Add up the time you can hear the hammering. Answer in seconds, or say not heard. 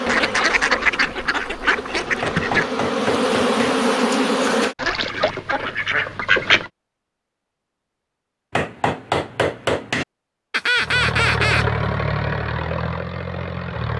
3 s.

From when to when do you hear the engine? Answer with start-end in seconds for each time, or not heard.
10.8-13.9.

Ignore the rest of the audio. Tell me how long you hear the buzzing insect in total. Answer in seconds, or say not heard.
5 s.